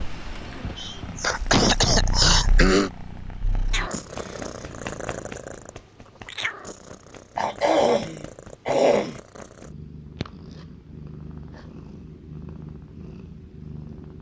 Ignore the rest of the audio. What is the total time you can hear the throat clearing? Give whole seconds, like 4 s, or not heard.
4 s.